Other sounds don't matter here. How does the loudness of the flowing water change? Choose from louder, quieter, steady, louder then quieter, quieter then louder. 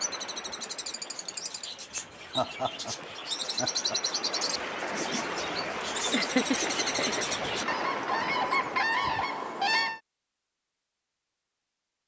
louder.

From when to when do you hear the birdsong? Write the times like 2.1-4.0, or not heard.
0.0-10.0.